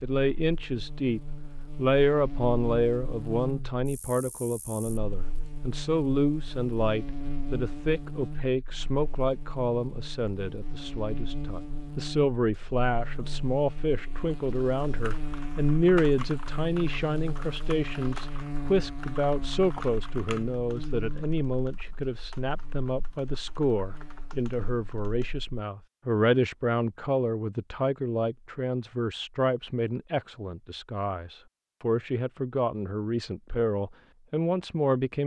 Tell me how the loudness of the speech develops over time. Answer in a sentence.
The loudness of the speech stays about the same.